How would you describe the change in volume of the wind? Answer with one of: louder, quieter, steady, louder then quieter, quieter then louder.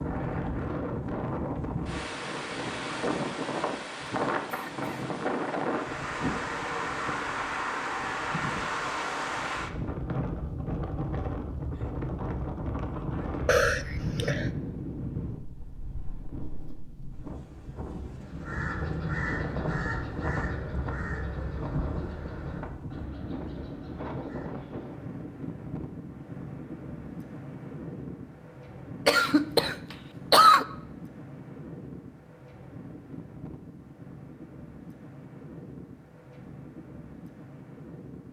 quieter.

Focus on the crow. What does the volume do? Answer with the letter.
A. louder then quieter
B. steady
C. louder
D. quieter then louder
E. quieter
E.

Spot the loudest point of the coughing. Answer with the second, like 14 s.
30 s.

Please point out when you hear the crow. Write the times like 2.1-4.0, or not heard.
18.2-24.6.